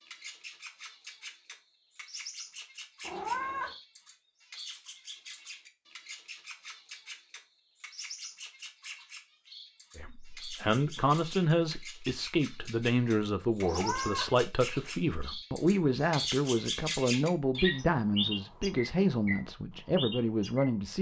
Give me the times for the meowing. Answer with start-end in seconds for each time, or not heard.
3.0-3.8, 13.6-14.3.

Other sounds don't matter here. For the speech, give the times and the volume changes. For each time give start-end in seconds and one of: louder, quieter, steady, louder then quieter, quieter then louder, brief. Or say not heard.
9.9-20.9 steady.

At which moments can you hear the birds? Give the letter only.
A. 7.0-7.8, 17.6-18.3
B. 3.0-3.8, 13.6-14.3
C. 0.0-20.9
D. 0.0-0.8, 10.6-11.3
C.